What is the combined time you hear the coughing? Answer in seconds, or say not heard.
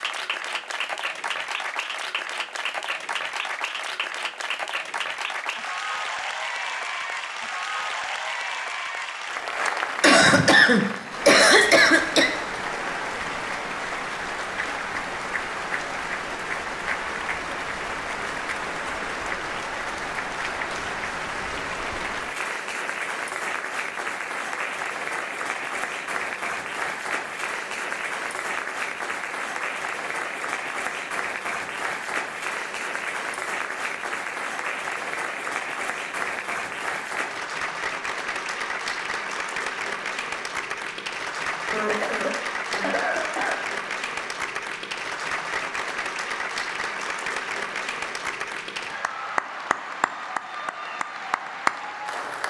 4 s.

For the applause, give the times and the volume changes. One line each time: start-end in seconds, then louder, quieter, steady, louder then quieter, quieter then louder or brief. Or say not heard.
0.0-52.4 steady.